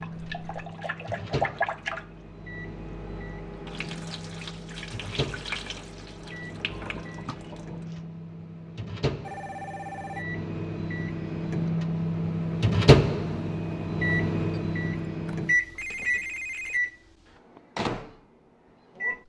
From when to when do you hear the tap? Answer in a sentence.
The tap can be heard from 0.0 to 8.0 s.